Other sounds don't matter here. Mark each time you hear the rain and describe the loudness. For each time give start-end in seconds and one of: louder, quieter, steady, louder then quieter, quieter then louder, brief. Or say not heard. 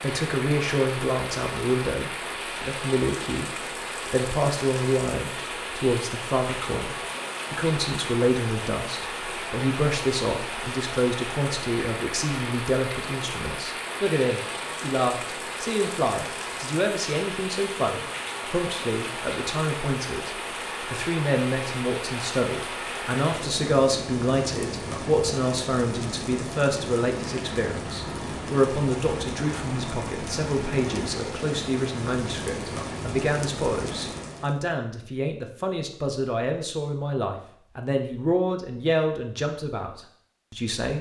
0.0-34.6 steady.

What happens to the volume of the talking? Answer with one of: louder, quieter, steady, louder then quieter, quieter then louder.
steady.